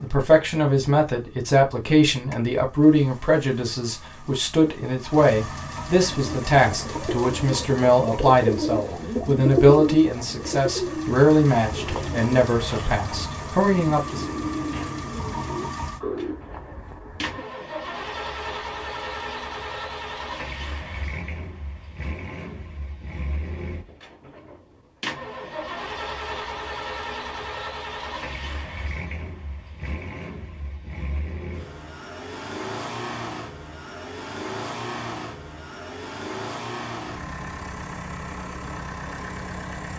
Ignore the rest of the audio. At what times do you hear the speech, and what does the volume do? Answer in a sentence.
The speech can be heard from 0.0 to 14.2 s, at a steady volume.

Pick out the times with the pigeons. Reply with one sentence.
You can hear the pigeons from 6.1 to 17.4 s.